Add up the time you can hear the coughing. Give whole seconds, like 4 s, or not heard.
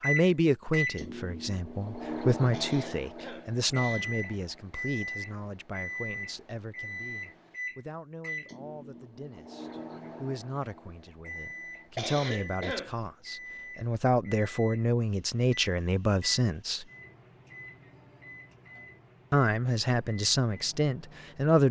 3 s.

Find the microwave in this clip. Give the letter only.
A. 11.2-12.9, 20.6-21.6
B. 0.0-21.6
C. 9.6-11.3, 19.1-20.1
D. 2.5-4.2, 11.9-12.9
B.